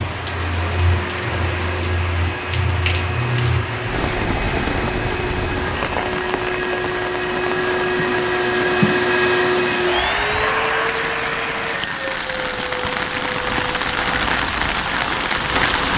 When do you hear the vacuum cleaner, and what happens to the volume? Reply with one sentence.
The vacuum cleaner can be heard from 0.1 to 15.9 s, getting louder then quieter.